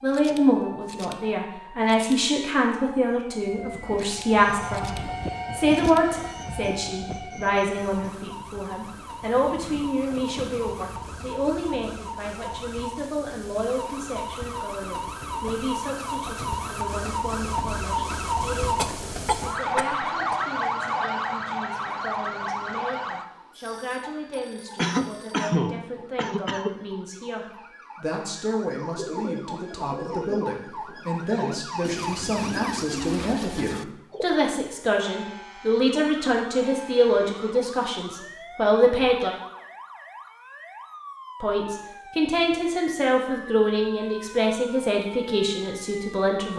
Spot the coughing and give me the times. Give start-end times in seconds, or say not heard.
18.8-20.4, 24.8-26.8.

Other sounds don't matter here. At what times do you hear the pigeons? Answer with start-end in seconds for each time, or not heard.
28.9-34.6.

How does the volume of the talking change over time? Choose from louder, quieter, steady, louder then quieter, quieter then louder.
quieter then louder.